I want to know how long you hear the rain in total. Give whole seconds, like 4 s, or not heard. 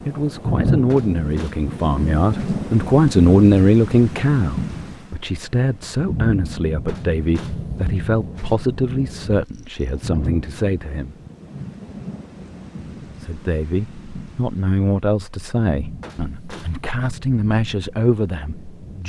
19 s.